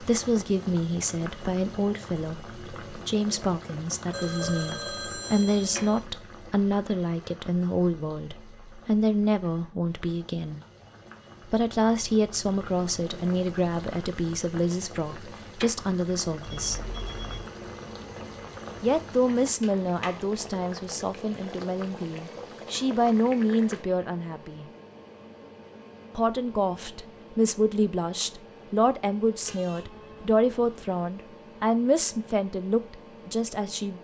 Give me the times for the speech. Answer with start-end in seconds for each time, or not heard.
0.0-10.6, 11.5-16.9, 18.8-24.6, 26.1-33.9.